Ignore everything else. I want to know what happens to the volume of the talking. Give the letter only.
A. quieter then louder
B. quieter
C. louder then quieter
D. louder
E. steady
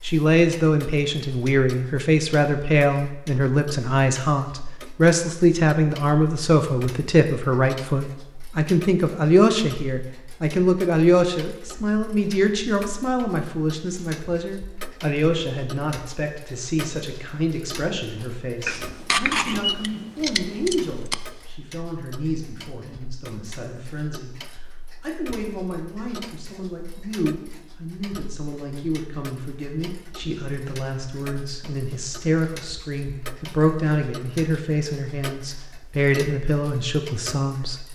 A.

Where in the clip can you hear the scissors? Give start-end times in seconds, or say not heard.
18.6-21.1.